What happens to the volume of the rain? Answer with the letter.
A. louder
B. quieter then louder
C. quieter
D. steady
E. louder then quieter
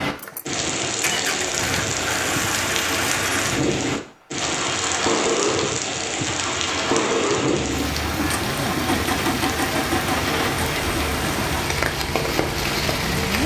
D.